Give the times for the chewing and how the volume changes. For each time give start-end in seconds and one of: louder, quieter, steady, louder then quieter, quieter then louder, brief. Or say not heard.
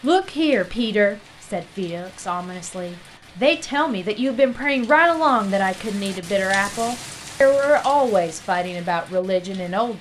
not heard.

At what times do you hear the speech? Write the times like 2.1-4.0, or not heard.
0.0-9.9.